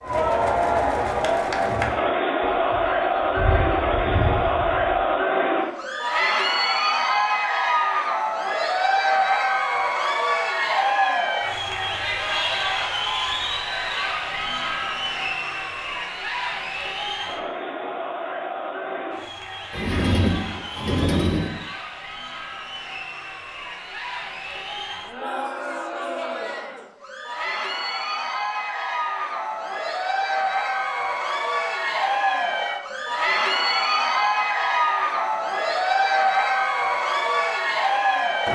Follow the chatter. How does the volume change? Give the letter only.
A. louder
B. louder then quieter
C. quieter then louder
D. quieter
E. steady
C.